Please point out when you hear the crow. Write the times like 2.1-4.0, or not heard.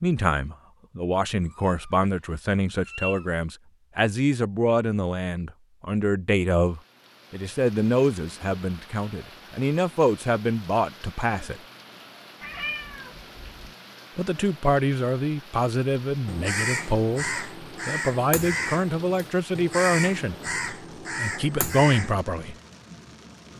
16.2-22.1.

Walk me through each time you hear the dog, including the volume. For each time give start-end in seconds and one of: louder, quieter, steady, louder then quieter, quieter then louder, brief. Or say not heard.
not heard.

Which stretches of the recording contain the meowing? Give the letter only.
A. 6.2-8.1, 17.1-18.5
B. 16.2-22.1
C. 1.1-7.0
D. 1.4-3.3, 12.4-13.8
D.